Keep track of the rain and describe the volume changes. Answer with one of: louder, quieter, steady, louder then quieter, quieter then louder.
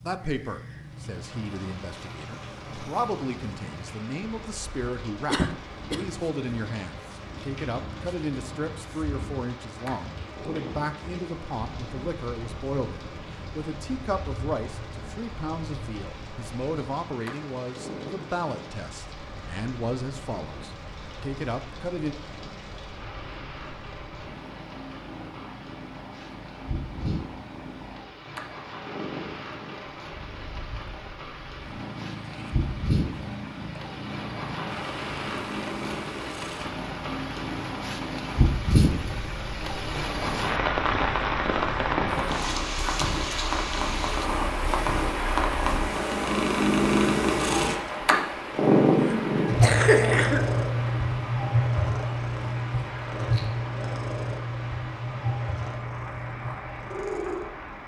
louder then quieter.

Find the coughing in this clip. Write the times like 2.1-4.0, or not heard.
5.2-6.0, 49.0-50.5.